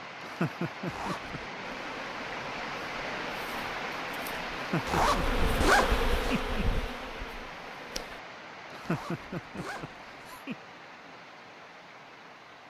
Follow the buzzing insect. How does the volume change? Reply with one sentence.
The volume of the buzzing insect goes up, then down.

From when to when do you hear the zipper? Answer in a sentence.
The zipper can be heard from 0.8 to 1.4 s, from 4.8 to 6.4 s and from 8.8 to 10.4 s.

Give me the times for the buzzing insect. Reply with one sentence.
The buzzing insect can be heard from 1.6 to 8.2 s.